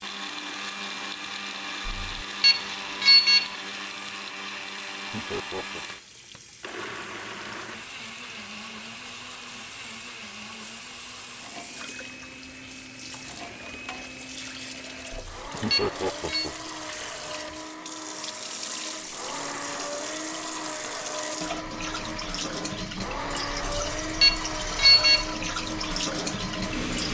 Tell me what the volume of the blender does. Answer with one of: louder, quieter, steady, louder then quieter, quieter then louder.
quieter then louder.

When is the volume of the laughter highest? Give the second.
16 s.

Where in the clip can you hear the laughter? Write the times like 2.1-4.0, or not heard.
5.1-5.8, 15.6-16.7.